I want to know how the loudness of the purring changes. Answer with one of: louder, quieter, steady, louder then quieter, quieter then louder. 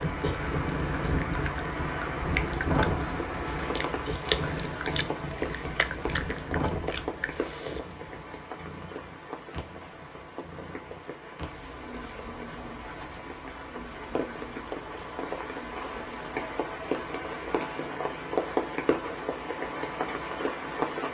quieter.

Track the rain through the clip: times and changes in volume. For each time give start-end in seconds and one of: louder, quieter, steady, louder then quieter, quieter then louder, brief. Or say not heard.
0.0-21.0 quieter then louder.